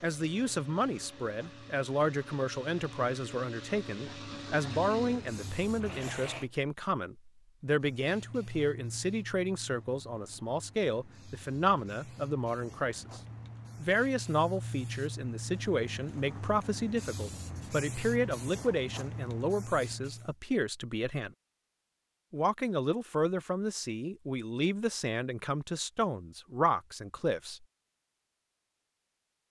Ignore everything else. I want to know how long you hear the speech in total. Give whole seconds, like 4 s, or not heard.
26 s.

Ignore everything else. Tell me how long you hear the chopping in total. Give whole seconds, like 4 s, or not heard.
not heard.